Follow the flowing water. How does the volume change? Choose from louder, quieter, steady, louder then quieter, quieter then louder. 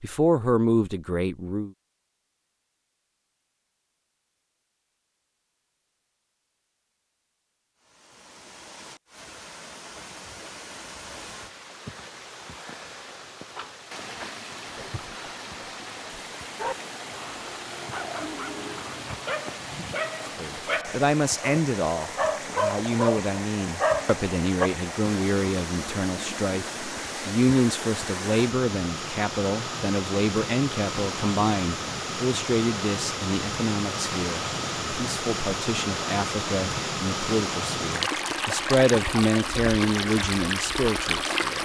louder.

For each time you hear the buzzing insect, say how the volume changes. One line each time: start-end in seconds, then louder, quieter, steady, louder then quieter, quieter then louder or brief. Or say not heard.
not heard.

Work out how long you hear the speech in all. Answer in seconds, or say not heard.
23 s.